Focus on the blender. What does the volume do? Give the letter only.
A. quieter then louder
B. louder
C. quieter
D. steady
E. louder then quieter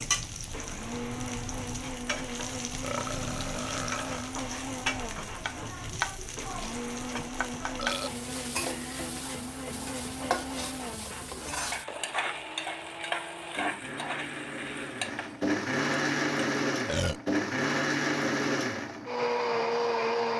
B.